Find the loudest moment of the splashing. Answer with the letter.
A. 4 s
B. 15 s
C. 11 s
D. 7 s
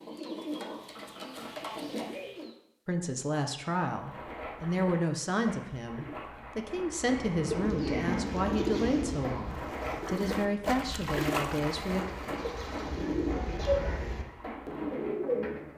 C.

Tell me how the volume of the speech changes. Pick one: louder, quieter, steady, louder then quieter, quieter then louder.
steady.